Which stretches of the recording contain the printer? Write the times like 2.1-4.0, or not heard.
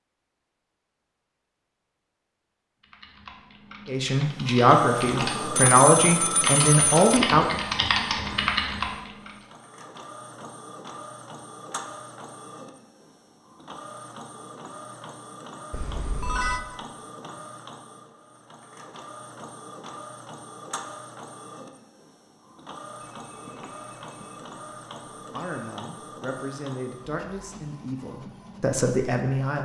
4.3-29.6.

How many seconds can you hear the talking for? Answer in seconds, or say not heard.
8 s.